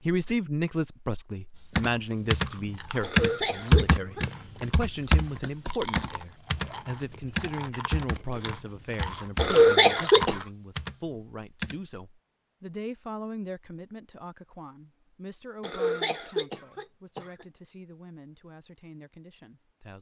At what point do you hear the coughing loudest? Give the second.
10 s.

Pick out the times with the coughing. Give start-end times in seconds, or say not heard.
3.0-4.6, 9.3-10.4, 15.6-17.4.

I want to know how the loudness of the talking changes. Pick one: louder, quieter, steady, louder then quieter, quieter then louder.
quieter.